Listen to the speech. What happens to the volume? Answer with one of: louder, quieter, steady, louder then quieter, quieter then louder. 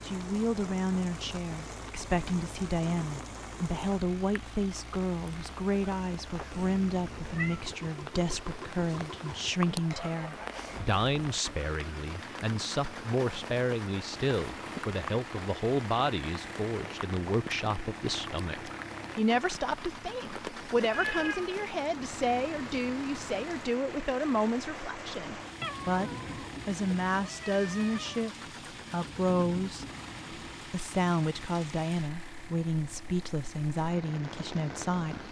steady.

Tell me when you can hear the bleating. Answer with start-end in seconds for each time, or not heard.
not heard.